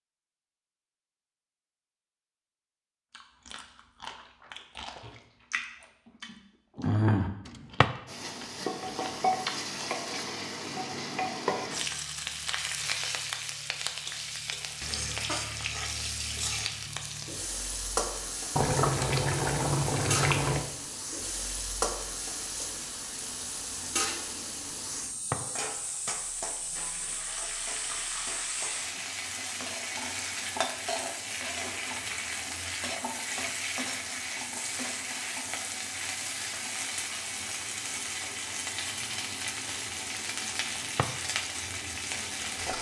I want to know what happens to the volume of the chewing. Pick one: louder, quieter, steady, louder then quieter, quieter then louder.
louder then quieter.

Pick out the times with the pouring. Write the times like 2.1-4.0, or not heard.
18.6-20.6.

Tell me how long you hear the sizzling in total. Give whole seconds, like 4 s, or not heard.
35 s.